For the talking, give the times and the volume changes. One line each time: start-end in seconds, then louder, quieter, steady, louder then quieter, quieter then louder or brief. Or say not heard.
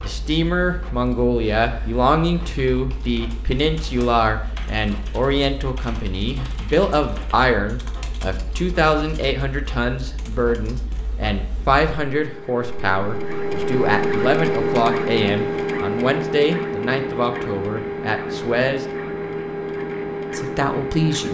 0.0-18.9 steady
20.3-21.2 brief.